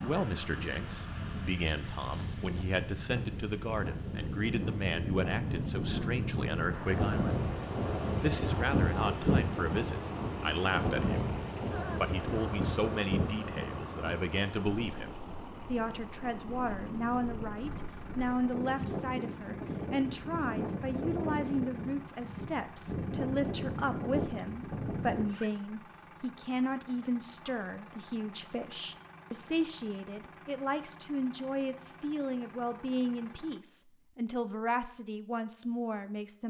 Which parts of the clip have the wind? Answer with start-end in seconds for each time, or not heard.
0.0-25.2.